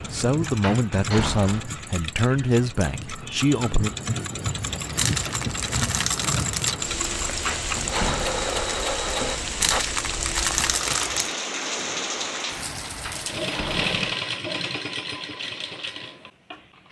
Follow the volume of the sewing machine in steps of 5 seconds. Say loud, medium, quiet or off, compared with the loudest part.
medium, loud, loud, medium.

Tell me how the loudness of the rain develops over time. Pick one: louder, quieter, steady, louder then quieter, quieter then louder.
louder.